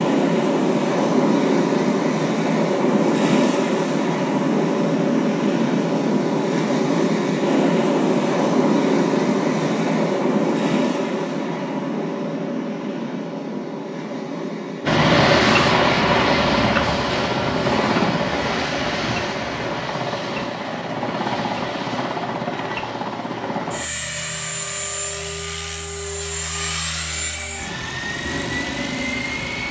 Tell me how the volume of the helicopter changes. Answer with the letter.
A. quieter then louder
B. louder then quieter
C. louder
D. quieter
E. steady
D.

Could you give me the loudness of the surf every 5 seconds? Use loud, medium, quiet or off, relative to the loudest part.
loud, loud, medium, medium, off, off.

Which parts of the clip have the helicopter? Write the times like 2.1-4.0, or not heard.
14.8-29.6.